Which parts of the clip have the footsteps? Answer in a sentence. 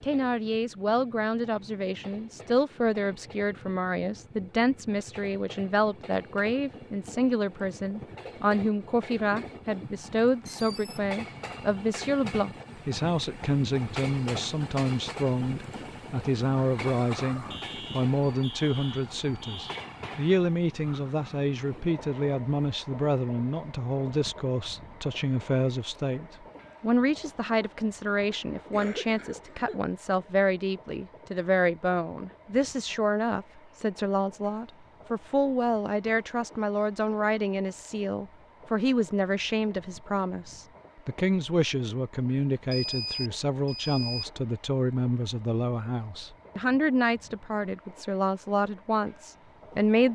You can't hear the footsteps here.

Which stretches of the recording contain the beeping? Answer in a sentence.
You can hear the beeping from 10.4 to 11.0 s, from 17.5 to 19.9 s and from 42.7 to 44.2 s.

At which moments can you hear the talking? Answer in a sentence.
The talking can be heard from 0.0 to 50.1 s.